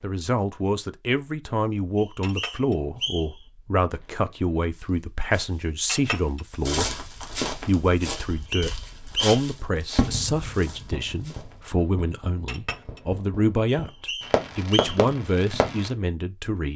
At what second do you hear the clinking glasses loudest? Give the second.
6 s.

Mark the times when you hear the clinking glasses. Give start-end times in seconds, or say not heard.
2.2-2.8, 5.8-6.4, 12.4-13.0.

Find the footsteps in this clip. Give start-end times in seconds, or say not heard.
3.9-11.6.